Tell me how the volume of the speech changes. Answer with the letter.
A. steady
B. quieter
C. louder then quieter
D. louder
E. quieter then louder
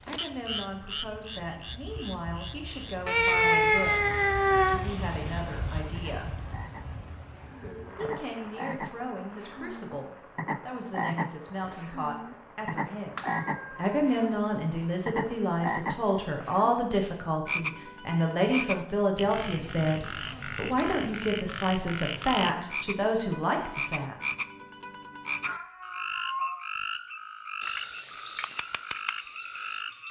D.